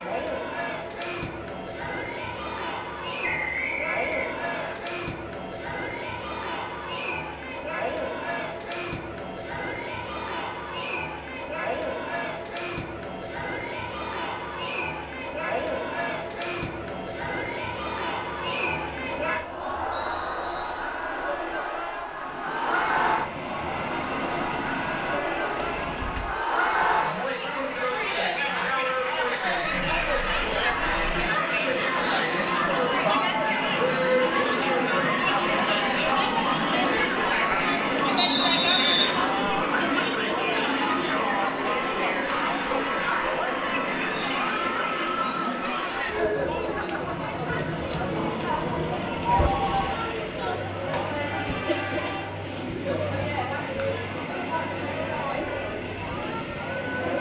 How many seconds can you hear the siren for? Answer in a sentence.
You can't hear the siren here.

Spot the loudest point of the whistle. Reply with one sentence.
The volume of the whistle peaks at 39 seconds.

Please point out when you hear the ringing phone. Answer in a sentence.
The ringing phone can be heard from 25.6 to 26.4 s and from 49.3 to 49.9 s.